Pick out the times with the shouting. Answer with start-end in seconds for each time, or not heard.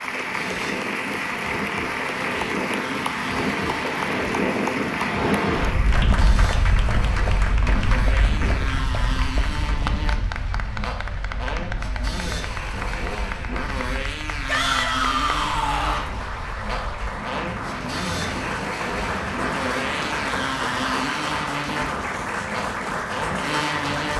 14.4-16.1.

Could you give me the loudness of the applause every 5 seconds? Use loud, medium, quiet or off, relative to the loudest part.
loud, loud, medium, loud, loud.